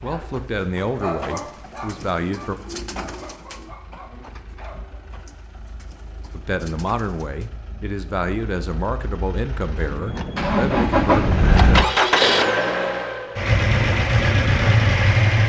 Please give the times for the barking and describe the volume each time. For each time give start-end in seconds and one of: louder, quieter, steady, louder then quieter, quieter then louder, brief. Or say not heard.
0.0-5.0 quieter.